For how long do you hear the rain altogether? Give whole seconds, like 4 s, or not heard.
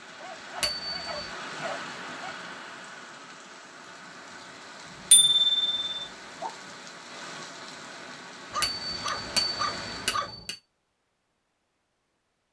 10 s.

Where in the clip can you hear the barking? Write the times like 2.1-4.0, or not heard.
0.2-2.4, 4.8-6.5, 8.5-10.4.